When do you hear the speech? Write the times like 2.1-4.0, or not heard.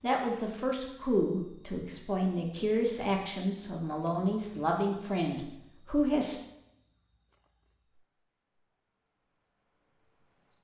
0.0-6.4.